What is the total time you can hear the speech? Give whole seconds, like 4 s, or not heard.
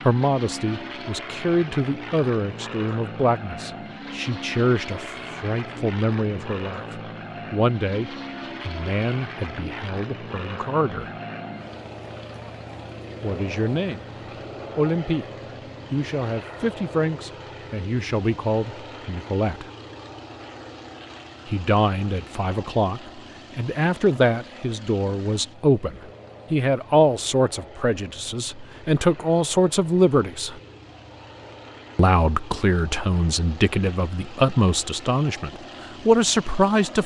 30 s.